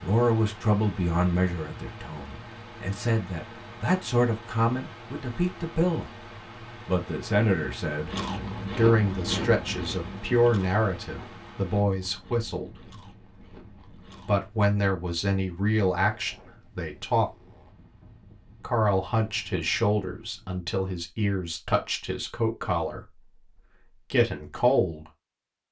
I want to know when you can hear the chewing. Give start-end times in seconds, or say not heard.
8.1-14.4.